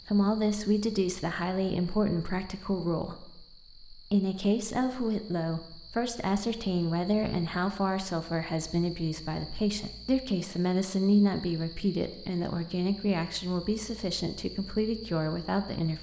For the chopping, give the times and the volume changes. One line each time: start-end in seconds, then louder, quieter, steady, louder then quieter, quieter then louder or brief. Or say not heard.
not heard.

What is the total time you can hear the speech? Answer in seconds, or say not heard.
16 s.